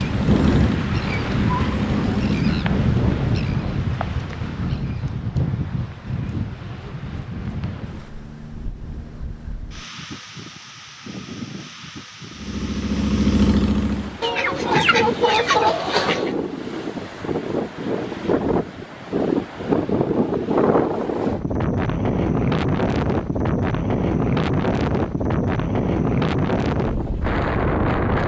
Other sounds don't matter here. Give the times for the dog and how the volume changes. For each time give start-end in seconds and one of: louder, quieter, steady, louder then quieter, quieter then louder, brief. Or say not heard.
not heard.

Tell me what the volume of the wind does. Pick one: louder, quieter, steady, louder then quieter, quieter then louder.
quieter then louder.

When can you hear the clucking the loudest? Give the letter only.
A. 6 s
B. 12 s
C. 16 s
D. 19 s
C.